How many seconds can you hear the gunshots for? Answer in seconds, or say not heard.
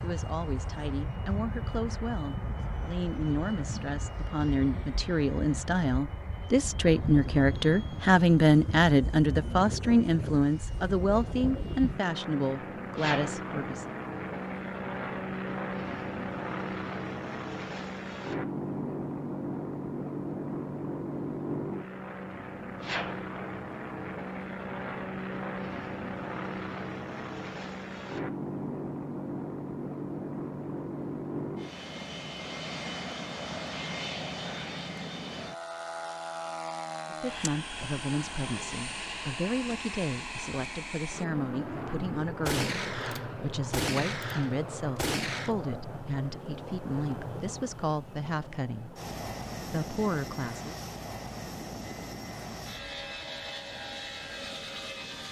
3 s.